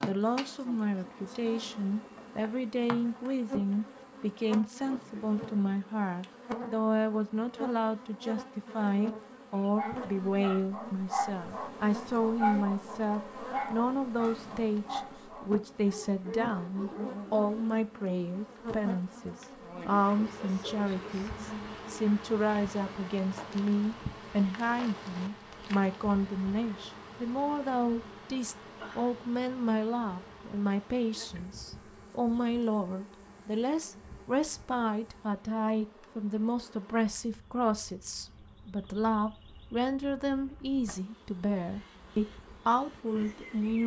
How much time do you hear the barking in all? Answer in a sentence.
You can hear the barking for 8 seconds altogether.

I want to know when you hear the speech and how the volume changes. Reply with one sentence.
The speech can be heard from 0.0 to 43.8 s, at a steady volume.